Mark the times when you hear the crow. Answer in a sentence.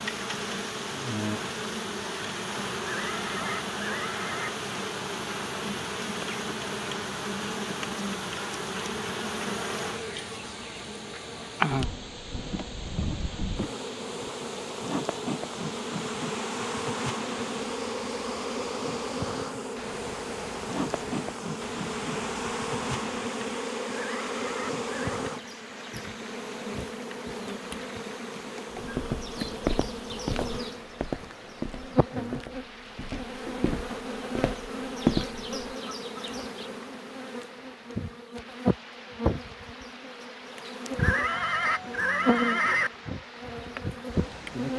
You can't hear the crow here.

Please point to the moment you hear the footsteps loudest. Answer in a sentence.
The loudest moment of the footsteps is at 35 seconds.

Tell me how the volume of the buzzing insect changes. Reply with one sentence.
The loudness of the buzzing insect stays about the same.